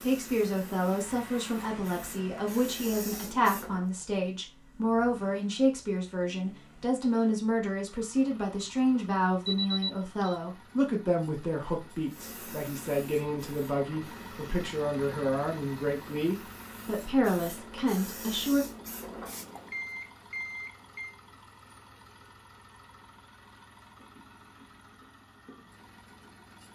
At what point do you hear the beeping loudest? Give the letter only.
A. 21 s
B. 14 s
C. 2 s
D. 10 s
D.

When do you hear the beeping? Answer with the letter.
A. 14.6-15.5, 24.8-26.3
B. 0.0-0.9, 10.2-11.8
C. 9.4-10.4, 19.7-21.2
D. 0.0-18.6
C.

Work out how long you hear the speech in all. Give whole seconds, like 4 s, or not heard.
19 s.